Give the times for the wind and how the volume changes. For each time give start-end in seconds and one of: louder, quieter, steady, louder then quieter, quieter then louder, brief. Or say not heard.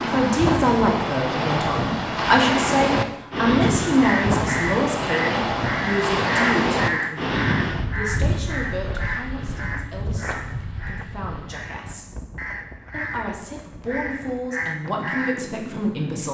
0.0-16.2 quieter.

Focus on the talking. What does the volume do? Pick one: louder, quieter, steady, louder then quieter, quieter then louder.
quieter then louder.